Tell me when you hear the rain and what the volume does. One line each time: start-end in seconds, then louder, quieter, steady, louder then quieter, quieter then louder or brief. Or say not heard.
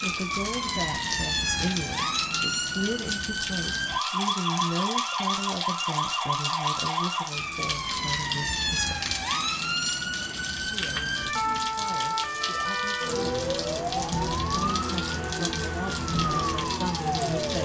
0.0-17.6 steady.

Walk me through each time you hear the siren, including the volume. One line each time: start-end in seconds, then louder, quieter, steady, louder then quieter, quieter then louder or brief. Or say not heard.
0.0-17.6 steady.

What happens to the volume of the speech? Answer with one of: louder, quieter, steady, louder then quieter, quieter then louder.
quieter then louder.